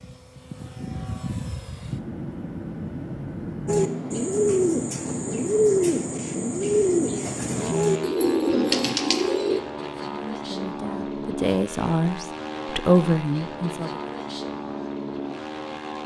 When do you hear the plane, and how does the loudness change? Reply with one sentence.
The plane can be heard from 0.0 to 16.0 s, at a steady volume.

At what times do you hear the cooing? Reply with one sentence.
The cooing can be heard from 3.6 to 9.6 s.